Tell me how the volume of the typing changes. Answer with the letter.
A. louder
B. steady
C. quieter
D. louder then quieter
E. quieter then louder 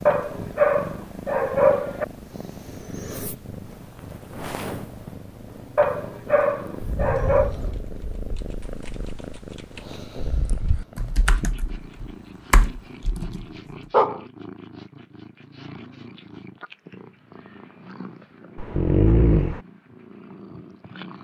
E.